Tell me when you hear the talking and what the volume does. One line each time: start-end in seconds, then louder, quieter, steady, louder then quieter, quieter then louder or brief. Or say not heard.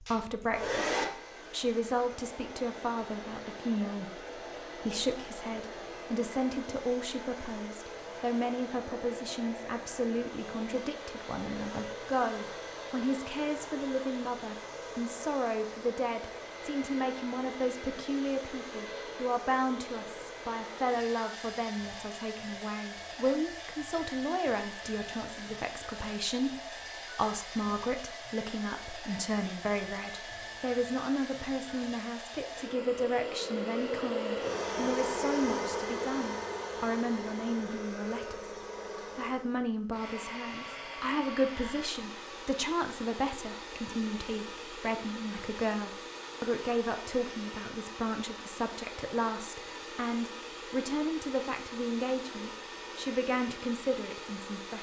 0.0-54.7 steady.